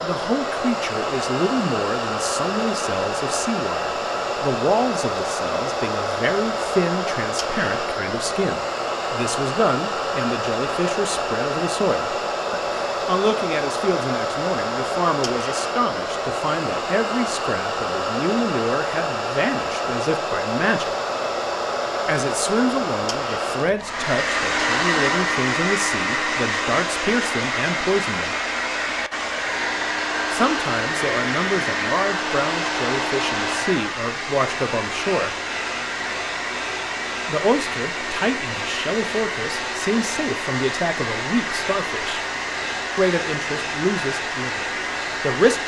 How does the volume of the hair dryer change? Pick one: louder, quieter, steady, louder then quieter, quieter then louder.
steady.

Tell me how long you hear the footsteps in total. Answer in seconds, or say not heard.
not heard.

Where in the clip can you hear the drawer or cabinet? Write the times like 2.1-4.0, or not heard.
not heard.